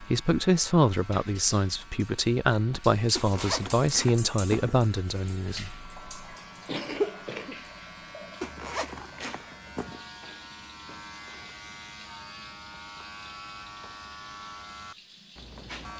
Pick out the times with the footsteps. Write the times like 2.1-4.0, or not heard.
not heard.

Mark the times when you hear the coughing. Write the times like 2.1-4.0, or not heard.
6.7-7.5.